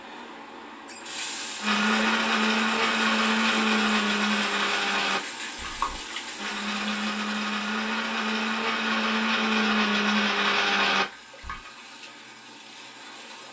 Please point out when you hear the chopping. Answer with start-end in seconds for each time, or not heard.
not heard.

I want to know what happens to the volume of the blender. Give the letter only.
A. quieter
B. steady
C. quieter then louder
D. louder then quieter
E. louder
C.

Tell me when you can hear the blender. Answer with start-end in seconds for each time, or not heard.
1.6-11.6.